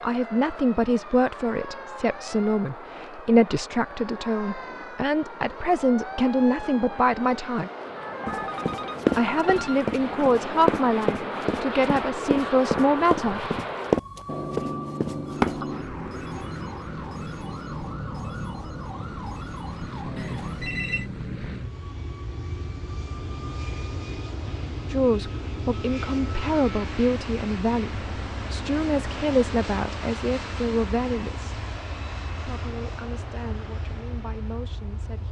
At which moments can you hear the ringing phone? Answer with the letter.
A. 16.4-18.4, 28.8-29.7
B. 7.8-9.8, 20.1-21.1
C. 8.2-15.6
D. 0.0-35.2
B.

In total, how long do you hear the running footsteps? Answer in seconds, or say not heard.
7 s.